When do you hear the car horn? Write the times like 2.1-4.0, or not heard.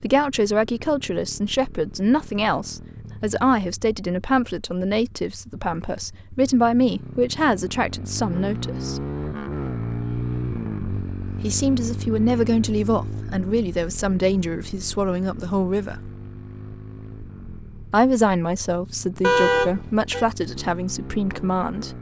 19.2-20.2.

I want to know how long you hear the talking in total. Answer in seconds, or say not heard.
18 s.